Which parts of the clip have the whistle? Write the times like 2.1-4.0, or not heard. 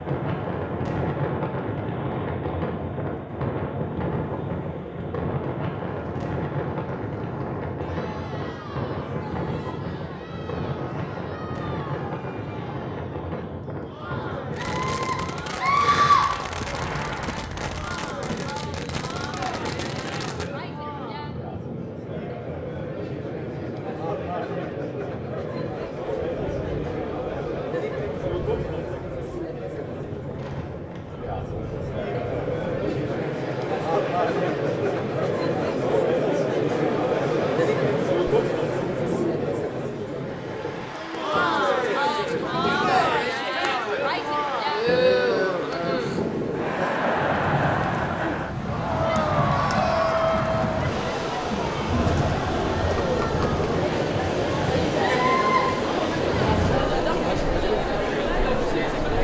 not heard.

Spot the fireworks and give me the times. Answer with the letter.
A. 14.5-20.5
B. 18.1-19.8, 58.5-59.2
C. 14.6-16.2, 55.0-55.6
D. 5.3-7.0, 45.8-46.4
A.